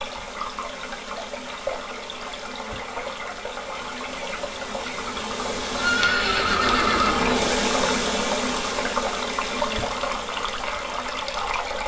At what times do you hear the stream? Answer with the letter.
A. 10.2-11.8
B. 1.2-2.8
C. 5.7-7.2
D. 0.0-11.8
D.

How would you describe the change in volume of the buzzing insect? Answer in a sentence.
The loudness of the buzzing insect goes up, then down.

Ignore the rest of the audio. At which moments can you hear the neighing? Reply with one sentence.
You can hear the neighing from 5.7 to 7.2 s.